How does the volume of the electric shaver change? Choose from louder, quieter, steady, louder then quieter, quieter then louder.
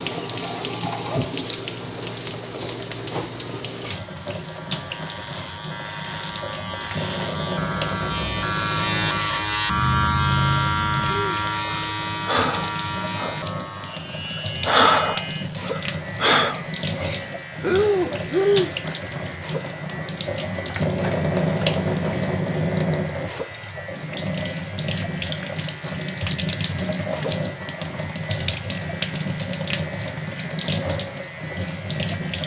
louder then quieter.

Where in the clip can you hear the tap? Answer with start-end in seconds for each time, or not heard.
0.0-32.4.